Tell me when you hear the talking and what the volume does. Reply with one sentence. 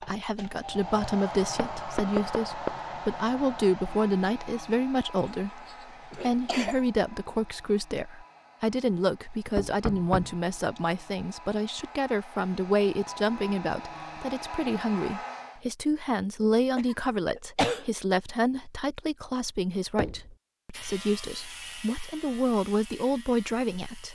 You can hear the talking from 0.1 to 24.1 s, at a steady volume.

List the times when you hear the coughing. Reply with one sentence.
You can hear the coughing from 5.2 to 6.8 s and from 16.4 to 17.9 s.